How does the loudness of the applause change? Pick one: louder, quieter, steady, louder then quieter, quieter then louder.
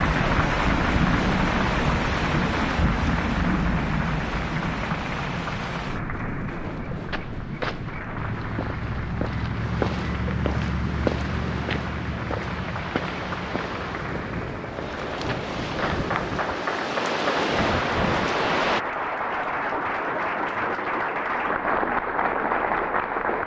quieter then louder.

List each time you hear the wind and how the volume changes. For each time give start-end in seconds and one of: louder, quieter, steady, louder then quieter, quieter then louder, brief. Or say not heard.
0.0-18.9 quieter then louder.